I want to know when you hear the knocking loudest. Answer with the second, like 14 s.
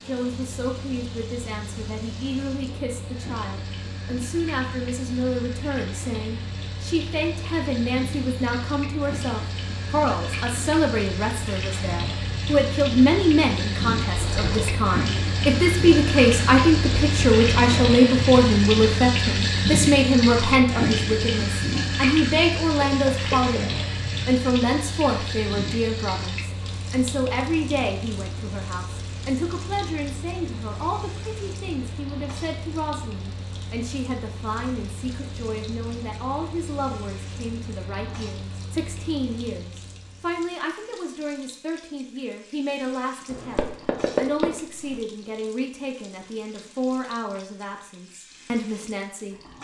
44 s.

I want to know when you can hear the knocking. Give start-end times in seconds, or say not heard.
14.2-14.8, 23.1-23.6, 43.3-45.0.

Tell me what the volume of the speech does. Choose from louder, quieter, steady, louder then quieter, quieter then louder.
louder then quieter.